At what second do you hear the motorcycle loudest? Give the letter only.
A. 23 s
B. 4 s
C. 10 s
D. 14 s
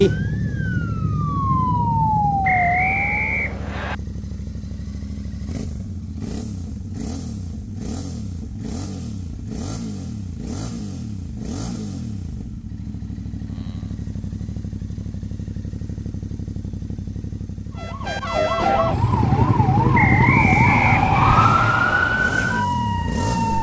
A.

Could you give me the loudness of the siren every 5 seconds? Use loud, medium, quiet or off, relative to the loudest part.
loud, off, off, loud, loud.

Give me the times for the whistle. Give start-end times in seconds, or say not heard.
2.4-4.0, 19.9-21.5.